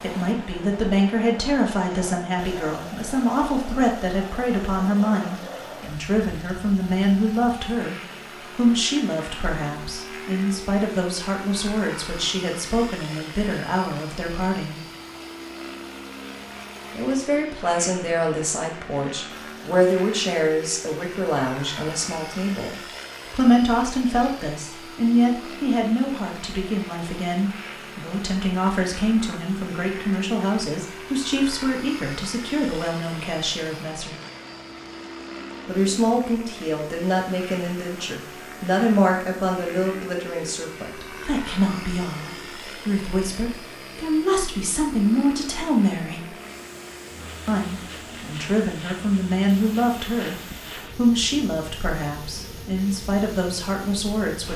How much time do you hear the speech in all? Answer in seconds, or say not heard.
50 s.